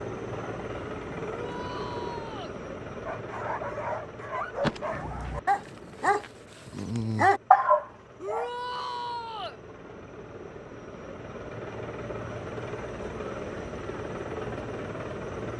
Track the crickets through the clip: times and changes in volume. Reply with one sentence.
The crickets can't be heard in this clip.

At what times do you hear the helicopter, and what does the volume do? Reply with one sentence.
You can hear the helicopter from 0.0 to 15.5 s, getting quieter then louder.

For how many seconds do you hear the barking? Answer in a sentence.
The barking can be heard for 6 seconds in total.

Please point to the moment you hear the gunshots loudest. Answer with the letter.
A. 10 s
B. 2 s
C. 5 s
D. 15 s
C.